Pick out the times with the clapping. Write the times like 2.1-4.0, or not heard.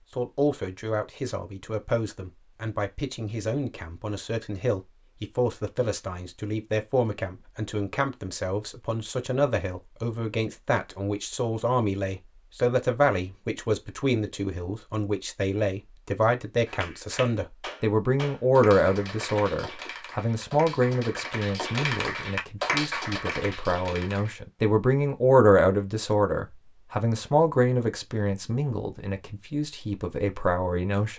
16.6-24.4.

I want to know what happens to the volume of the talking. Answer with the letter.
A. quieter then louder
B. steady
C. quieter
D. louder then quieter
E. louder
E.